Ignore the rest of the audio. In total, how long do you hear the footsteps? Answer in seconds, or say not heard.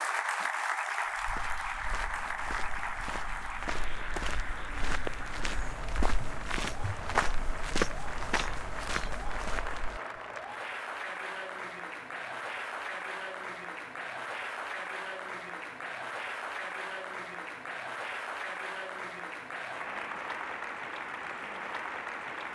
9 s.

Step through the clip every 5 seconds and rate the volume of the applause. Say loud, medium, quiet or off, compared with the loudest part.
loud, medium, loud, loud, loud.